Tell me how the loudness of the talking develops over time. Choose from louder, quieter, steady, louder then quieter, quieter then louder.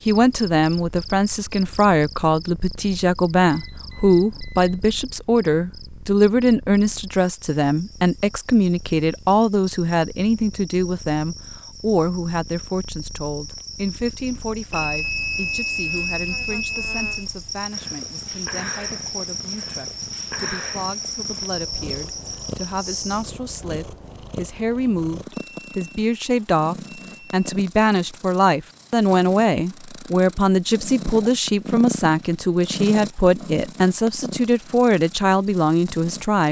quieter then louder.